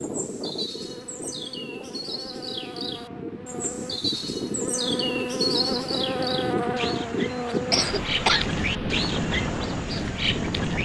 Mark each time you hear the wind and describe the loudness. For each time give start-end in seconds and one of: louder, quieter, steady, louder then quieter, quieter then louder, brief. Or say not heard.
0.0-10.8 louder.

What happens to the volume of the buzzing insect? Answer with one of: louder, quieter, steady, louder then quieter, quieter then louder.
louder then quieter.